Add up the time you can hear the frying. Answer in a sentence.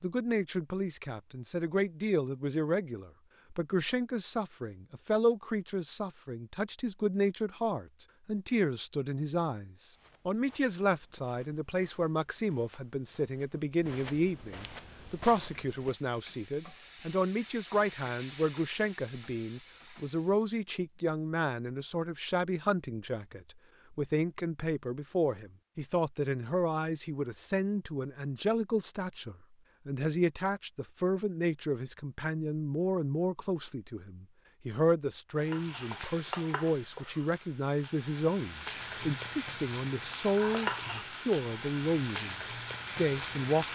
The frying can be heard for 14 seconds in total.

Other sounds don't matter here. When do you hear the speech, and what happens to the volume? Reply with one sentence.
The speech can be heard from 0.0 to 43.7 s, at a steady volume.